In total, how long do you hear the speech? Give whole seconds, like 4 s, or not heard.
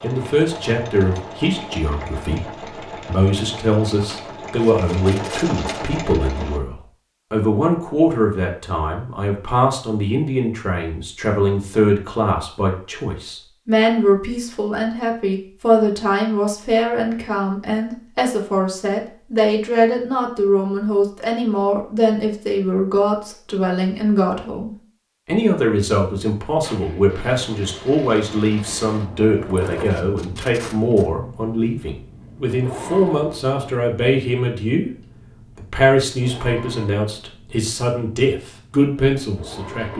39 s.